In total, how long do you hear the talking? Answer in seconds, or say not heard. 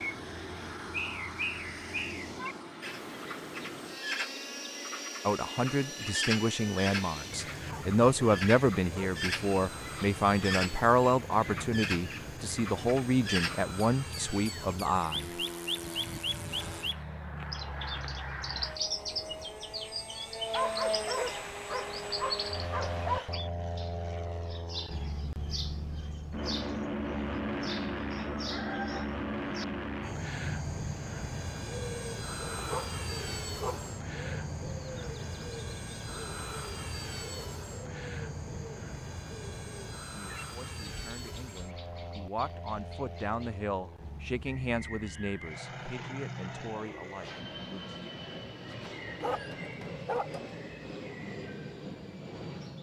18 s.